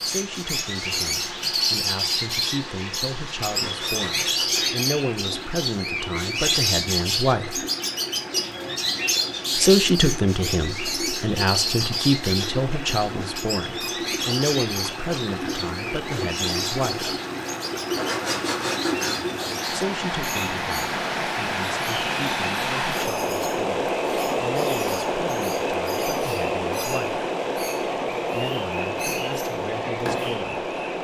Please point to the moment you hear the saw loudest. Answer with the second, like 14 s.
18 s.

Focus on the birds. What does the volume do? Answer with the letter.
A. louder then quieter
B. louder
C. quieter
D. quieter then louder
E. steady
C.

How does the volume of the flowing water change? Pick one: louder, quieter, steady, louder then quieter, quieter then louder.
louder.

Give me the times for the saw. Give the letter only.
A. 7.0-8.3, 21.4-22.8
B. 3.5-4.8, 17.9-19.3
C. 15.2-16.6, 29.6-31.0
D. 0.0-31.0
B.